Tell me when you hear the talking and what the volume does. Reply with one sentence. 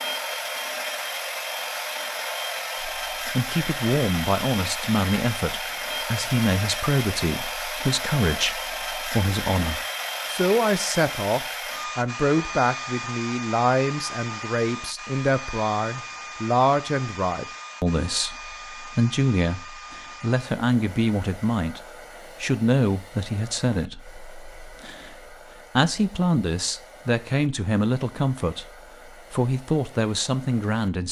You can hear the talking from 2.8 to 31.0 s, at a steady volume.